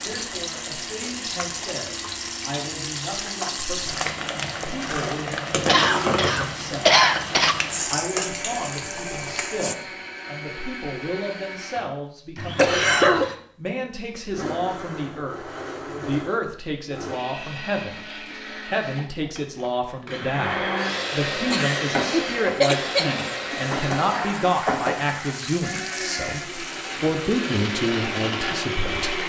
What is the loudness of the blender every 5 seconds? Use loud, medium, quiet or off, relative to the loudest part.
medium, medium, medium, medium, loud, loud.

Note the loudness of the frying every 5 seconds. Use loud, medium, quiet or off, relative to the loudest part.
loud, loud, off, off, loud, medium.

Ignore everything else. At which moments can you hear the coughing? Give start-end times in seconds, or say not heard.
5.7-7.5, 12.6-13.3, 21.5-23.6.